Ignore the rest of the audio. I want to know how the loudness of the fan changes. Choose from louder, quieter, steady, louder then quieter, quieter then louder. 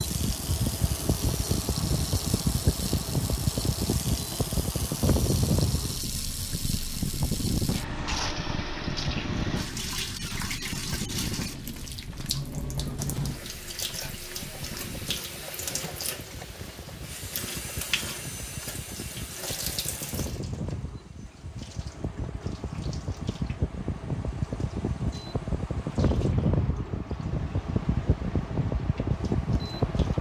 quieter then louder.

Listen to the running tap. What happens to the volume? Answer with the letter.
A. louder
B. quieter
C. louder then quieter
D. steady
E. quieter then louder
B.